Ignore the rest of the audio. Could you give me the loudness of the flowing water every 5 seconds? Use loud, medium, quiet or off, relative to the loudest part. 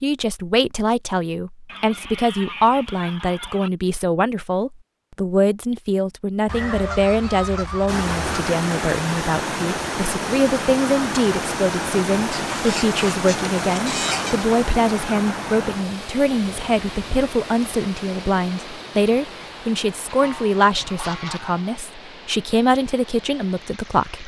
off, loud, loud, medium, quiet.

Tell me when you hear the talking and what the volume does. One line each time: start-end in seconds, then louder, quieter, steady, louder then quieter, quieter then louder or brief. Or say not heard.
0.0-24.2 steady.